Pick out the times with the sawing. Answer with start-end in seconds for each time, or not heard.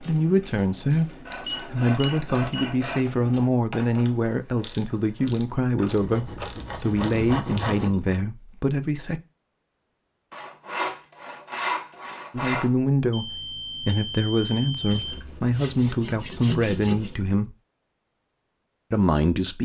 1.2-3.1, 5.8-7.9, 10.3-12.7, 14.9-17.1.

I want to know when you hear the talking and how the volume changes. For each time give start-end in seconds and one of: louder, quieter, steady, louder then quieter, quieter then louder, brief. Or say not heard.
0.0-9.2 steady
12.3-17.6 steady
18.9-19.6 brief.